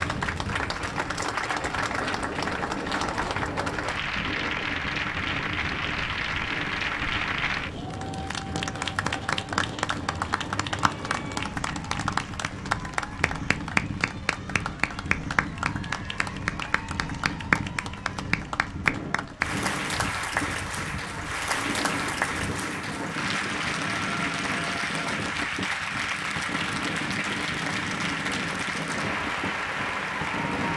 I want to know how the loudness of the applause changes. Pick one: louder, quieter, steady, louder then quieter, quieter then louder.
steady.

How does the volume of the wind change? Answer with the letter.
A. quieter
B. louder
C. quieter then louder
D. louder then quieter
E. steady
E.